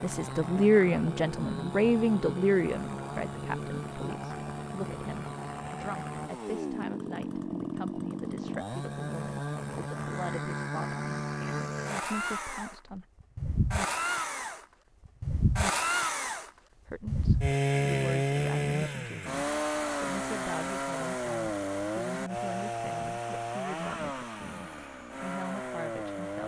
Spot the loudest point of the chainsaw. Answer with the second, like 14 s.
18 s.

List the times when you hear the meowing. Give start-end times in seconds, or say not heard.
not heard.